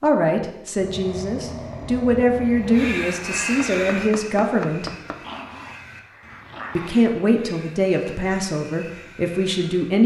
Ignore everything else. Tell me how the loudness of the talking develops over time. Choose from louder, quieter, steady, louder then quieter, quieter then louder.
steady.